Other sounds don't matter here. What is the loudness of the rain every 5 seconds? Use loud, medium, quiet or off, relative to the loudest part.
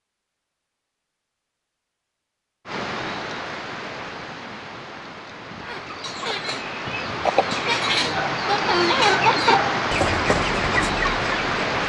medium, loud, loud.